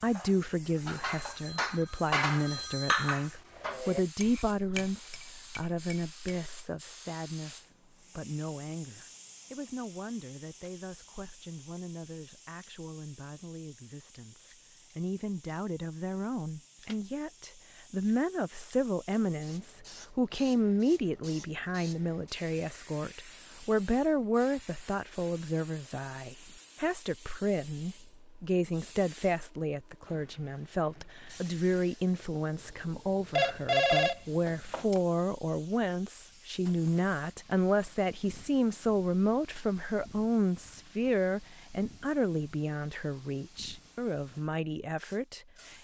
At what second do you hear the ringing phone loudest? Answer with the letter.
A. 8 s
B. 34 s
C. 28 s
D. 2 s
B.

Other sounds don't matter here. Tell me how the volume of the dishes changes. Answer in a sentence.
The volume of the dishes goes up, then down.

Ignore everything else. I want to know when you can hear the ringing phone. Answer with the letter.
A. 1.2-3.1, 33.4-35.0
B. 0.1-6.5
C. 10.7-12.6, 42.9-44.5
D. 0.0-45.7
A.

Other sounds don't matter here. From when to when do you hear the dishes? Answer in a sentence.
The dishes can be heard from 0.1 to 6.5 s.